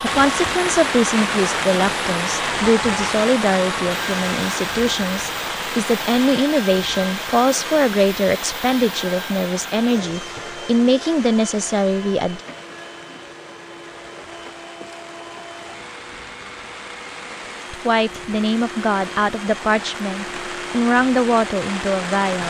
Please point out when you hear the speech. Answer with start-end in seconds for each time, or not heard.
0.0-12.4, 17.7-22.4.